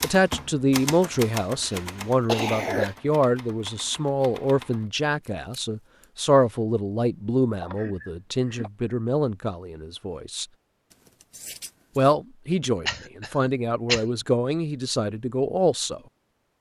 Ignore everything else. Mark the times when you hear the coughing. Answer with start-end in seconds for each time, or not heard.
1.6-3.0, 7.6-8.7, 12.8-14.1.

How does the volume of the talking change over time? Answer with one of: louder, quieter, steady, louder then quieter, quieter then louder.
steady.